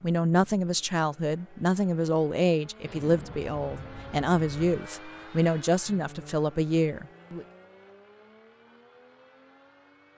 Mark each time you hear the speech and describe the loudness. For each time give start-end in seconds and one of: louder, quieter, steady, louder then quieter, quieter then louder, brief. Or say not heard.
0.0-7.5 steady.